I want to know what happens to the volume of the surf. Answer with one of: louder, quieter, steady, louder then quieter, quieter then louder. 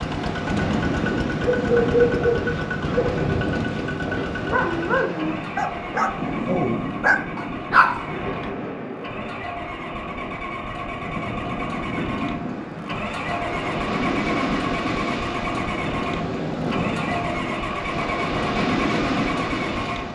quieter then louder.